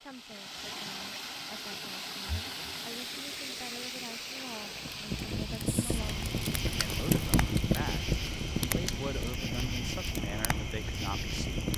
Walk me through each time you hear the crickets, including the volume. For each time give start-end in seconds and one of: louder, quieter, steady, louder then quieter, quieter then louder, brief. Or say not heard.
5.7-11.7 steady.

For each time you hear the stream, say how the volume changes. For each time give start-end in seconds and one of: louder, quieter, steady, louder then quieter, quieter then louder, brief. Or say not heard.
0.0-9.3 quieter.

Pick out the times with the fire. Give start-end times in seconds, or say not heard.
4.8-11.7.